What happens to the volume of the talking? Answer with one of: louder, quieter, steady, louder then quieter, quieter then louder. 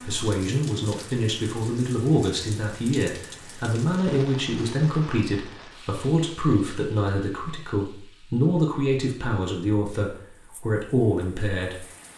steady.